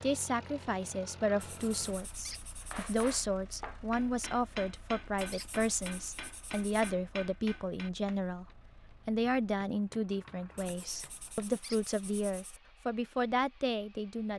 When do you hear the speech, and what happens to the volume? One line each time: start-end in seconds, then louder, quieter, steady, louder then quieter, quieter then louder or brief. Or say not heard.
0.0-14.3 steady.